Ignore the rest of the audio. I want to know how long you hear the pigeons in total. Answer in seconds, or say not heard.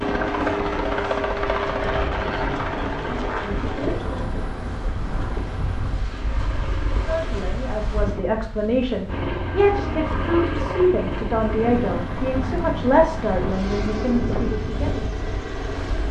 3 s.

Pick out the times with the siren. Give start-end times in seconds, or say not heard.
not heard.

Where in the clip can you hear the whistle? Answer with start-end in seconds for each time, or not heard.
not heard.